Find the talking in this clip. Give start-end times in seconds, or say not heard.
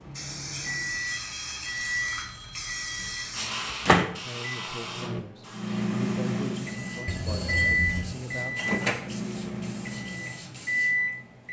4.2-9.4.